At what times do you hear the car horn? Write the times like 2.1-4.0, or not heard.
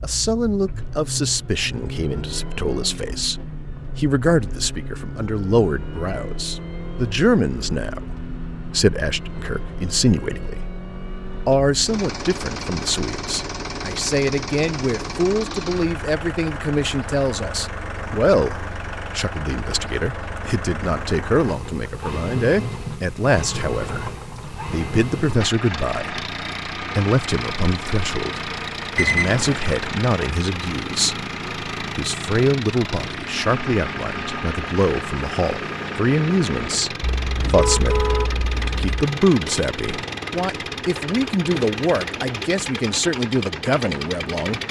37.0-39.0.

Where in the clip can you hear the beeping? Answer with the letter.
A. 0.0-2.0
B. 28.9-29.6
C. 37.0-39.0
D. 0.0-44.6
B.